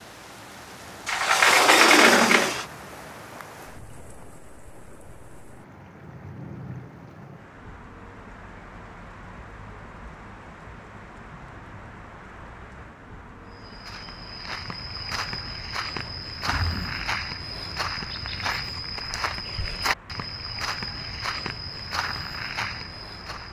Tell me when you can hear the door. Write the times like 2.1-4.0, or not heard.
1.1-2.6, 16.2-17.1.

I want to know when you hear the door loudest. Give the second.
2 s.